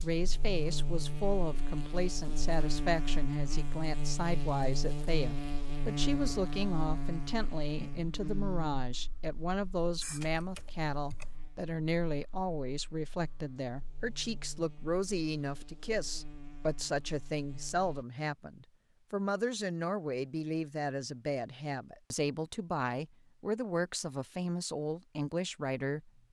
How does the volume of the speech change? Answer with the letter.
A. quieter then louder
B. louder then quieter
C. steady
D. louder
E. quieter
C.